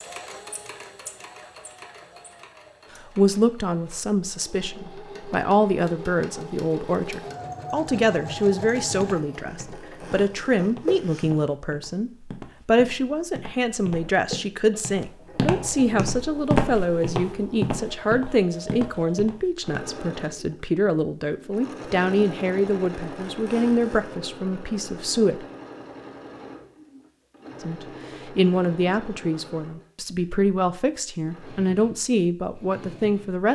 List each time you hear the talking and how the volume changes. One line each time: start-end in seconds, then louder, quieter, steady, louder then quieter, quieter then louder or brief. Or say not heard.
3.1-25.4 steady
27.6-33.5 quieter then louder.